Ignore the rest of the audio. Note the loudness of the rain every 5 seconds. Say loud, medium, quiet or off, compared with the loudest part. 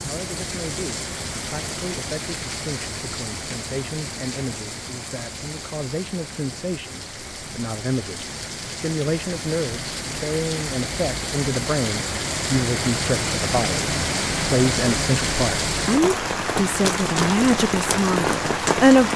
medium, medium, loud, loud.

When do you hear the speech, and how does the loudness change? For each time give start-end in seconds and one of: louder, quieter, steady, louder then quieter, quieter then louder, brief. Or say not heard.
0.0-19.1 louder.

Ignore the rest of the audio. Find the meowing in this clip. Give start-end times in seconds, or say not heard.
not heard.